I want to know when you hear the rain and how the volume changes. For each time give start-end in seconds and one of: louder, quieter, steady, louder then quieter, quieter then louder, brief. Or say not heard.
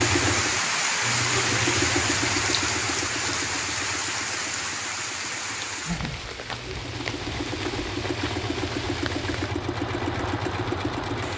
0.0-11.3 quieter.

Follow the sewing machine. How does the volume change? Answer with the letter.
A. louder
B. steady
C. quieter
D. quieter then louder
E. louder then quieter
D.